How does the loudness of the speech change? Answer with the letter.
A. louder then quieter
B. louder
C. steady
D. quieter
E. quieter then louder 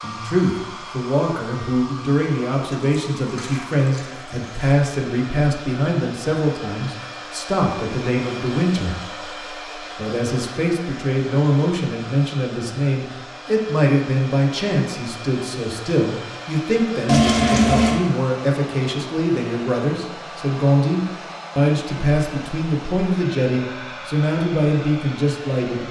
C.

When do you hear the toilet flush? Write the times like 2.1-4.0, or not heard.
2.6-4.8, 17.1-18.0.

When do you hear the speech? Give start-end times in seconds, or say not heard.
0.0-25.8.